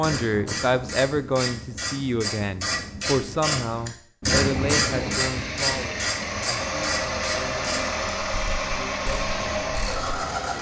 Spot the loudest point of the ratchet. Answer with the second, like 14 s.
4 s.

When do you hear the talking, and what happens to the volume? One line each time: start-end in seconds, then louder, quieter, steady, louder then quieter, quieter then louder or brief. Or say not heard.
0.0-10.5 quieter.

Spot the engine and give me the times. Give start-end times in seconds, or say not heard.
4.3-10.5.